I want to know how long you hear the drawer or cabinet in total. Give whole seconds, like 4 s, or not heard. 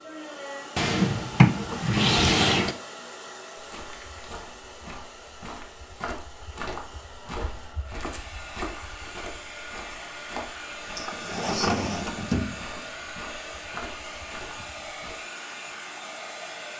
4 s.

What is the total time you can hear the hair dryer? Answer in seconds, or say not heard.
17 s.